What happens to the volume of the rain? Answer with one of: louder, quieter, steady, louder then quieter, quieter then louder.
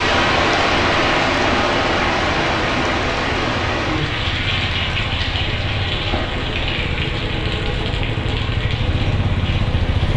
quieter.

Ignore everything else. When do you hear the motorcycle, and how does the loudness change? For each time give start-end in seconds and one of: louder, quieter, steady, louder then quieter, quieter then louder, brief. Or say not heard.
0.1-10.1 louder.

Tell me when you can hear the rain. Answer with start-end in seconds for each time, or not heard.
0.0-10.1.